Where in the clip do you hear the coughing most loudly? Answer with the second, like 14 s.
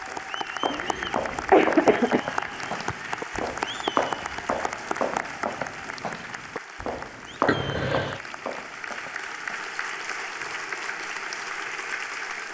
2 s.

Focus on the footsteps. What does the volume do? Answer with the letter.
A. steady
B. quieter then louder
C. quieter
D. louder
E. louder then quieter
C.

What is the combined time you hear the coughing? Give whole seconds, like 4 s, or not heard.
2 s.